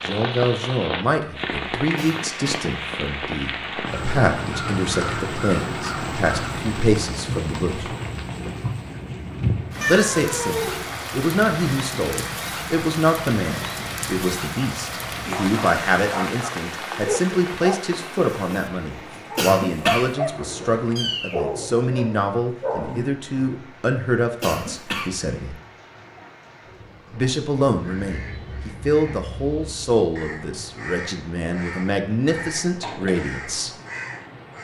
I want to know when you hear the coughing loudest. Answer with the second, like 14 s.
20 s.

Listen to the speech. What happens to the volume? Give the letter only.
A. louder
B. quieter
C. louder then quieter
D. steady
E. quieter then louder
D.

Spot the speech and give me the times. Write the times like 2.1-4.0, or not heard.
0.0-8.0, 9.8-25.6, 27.1-33.7.